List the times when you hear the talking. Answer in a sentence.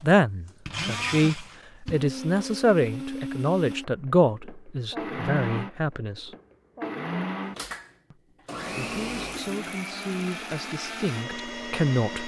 The talking can be heard from 0.0 to 6.3 s and from 8.1 to 12.2 s.